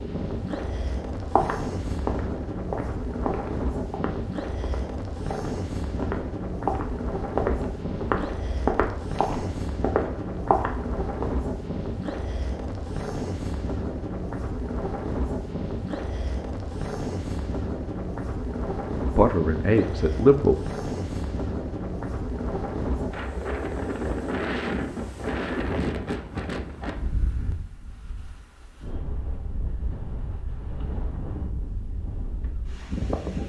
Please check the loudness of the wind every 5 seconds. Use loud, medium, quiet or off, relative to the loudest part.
loud, loud, loud, loud, loud, loud, medium.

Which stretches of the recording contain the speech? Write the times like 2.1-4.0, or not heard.
18.9-20.6.